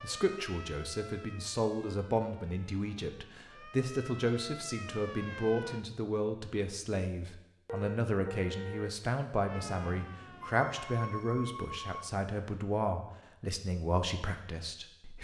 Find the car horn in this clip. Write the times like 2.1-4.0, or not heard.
7.7-9.0.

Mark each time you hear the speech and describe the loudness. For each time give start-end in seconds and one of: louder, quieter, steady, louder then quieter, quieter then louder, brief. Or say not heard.
0.0-15.1 steady.